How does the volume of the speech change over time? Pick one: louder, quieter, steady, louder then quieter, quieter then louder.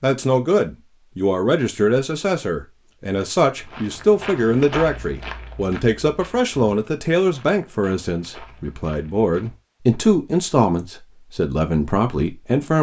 steady.